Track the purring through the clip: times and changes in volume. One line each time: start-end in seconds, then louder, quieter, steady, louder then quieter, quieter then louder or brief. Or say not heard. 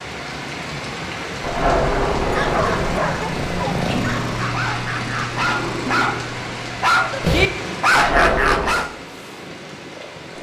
0.0-10.3 louder then quieter.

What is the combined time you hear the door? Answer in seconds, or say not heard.
3 s.